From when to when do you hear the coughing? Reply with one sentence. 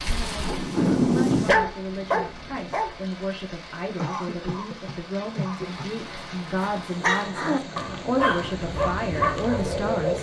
You can hear the coughing from 4.0 to 5.9 s.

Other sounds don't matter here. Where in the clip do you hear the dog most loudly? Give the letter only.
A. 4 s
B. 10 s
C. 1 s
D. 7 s
C.